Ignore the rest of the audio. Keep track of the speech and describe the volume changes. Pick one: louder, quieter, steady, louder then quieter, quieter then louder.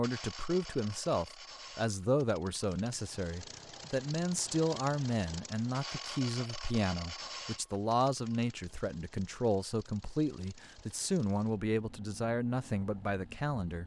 steady.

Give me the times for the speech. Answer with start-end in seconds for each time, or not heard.
0.0-13.8.